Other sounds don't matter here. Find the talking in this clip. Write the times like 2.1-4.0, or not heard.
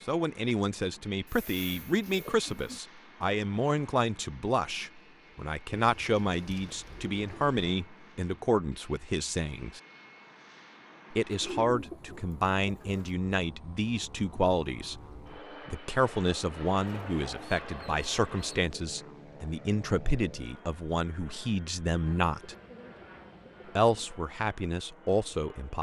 0.1-9.8, 11.1-15.0, 15.7-22.6, 23.8-25.7.